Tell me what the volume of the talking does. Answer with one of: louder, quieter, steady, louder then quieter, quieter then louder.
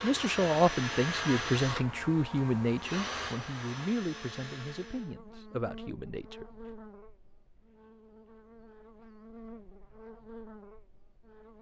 quieter.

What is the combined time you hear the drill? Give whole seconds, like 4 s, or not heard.
5 s.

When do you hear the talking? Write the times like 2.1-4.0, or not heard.
0.0-6.5.